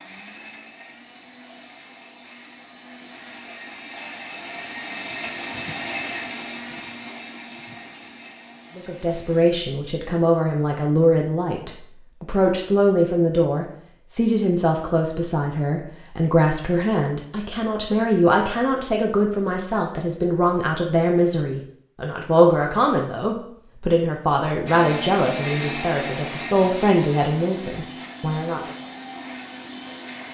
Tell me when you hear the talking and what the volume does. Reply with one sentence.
The talking can be heard from 8.8 to 28.7 s, at a steady volume.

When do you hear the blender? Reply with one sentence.
The blender can be heard from 0.0 to 9.5 s and from 24.6 to 30.3 s.